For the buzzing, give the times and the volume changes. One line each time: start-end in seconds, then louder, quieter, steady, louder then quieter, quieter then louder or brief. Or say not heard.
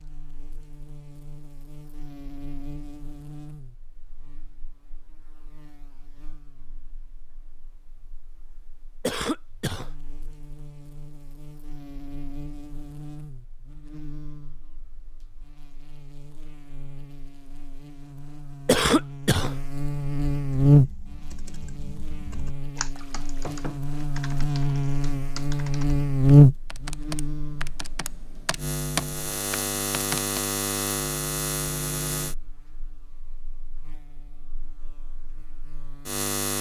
0.0-36.5 louder then quieter.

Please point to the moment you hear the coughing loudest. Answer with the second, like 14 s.
19 s.